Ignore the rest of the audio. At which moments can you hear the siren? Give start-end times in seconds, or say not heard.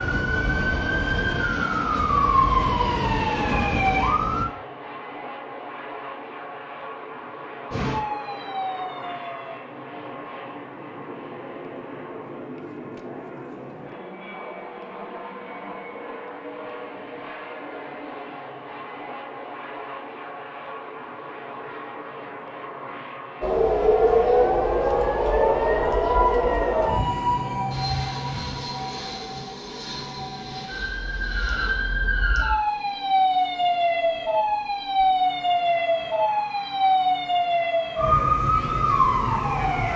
0.0-4.5, 7.7-9.6, 23.4-39.9.